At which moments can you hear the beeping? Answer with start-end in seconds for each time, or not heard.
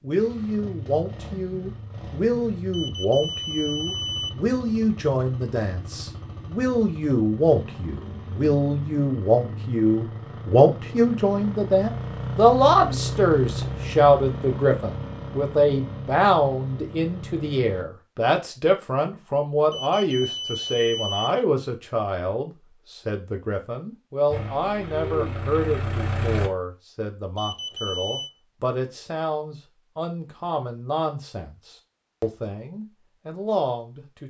2.7-4.3, 19.7-21.3, 27.4-28.3.